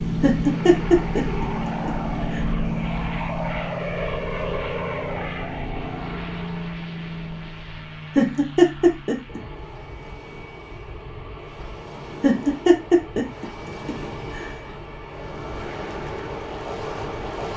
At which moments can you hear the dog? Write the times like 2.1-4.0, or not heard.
not heard.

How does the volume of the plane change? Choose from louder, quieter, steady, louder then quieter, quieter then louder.
quieter.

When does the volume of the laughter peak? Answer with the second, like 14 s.
9 s.